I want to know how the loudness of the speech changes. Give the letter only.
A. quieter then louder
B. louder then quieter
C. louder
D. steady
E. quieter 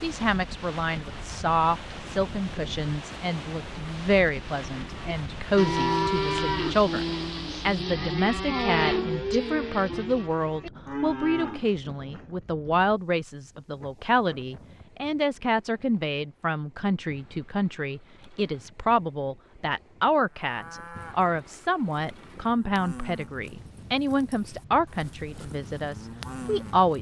D.